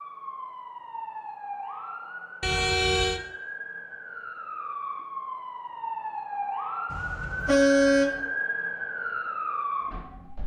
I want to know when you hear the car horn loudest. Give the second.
8 s.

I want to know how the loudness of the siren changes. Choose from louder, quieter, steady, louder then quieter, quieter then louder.
louder.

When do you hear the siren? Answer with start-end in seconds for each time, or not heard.
0.0-10.4.